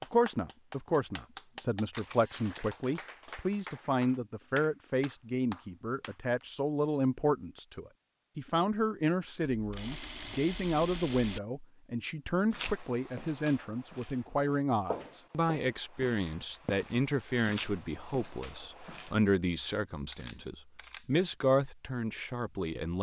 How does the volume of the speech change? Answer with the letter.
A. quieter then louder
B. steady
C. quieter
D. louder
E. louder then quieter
B.